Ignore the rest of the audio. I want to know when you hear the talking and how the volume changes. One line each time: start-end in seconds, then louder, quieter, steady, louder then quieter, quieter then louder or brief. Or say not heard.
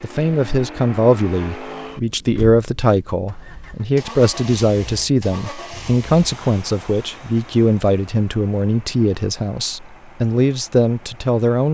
0.0-11.6 steady.